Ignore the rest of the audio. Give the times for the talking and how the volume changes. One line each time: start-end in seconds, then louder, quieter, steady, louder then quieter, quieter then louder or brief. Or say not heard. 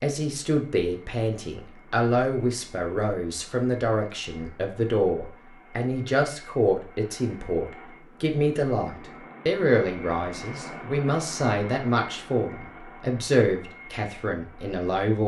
0.0-15.2 steady.